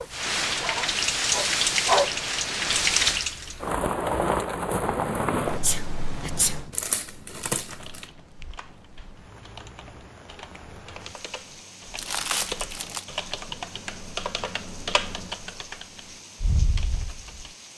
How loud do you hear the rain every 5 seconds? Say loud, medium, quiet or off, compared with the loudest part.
loud, medium, quiet, quiet.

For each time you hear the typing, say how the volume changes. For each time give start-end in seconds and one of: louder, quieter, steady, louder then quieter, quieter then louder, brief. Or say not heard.
7.7-17.6 louder.